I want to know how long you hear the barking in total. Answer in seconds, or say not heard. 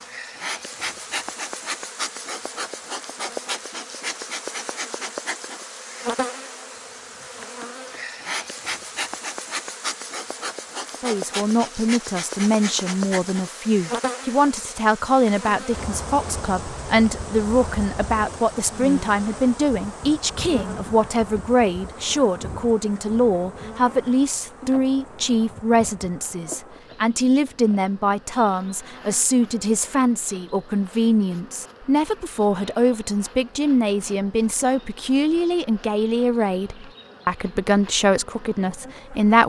not heard.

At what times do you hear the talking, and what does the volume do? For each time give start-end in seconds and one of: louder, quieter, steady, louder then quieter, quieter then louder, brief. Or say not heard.
11.0-39.4 steady.